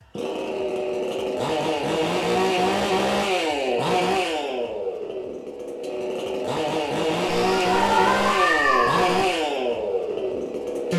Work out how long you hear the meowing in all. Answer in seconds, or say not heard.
2 s.